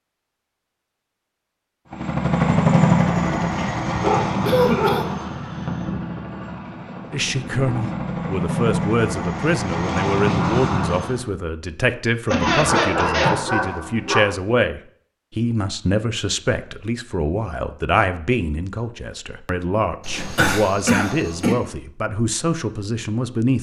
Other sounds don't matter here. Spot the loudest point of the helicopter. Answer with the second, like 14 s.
3 s.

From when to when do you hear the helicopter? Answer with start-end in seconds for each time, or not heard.
1.9-11.2.